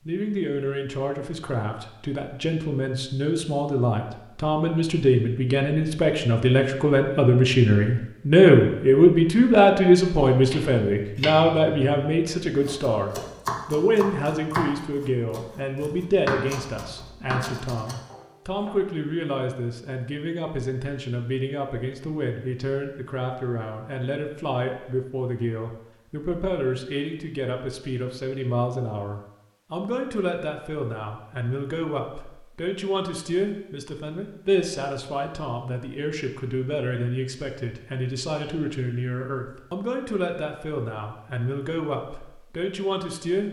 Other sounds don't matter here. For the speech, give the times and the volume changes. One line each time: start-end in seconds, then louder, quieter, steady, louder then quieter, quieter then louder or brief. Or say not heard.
0.1-43.4 quieter.